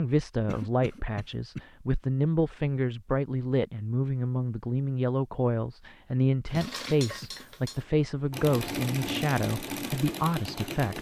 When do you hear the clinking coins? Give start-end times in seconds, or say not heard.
not heard.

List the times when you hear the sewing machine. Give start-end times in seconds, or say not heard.
6.5-10.9.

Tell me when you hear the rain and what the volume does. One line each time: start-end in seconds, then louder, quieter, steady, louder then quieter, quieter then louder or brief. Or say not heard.
not heard.